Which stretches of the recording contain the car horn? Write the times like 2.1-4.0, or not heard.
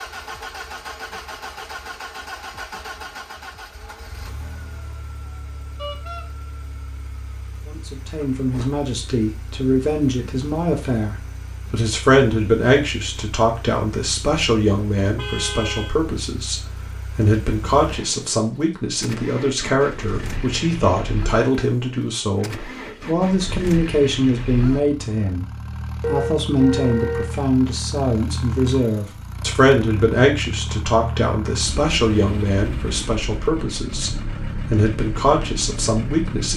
5.8-6.2, 15.2-15.9, 26.0-27.4.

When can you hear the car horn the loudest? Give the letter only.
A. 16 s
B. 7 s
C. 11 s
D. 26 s
D.